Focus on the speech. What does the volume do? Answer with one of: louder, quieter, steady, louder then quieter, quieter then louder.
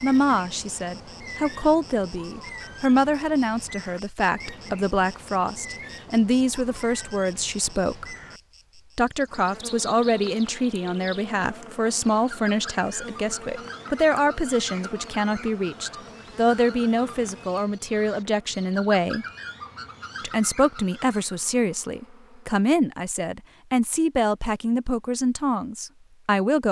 steady.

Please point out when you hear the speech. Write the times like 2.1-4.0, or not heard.
0.0-8.1, 8.9-19.2, 20.2-26.6.